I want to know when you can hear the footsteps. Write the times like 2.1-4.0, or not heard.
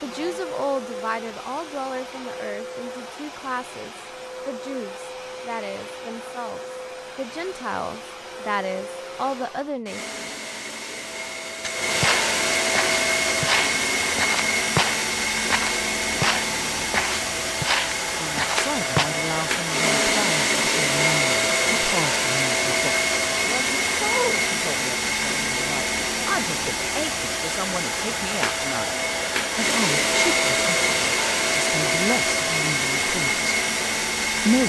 11.7-19.1.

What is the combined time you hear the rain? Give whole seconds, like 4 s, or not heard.
not heard.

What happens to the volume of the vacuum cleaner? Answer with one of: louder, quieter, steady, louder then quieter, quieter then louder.
louder.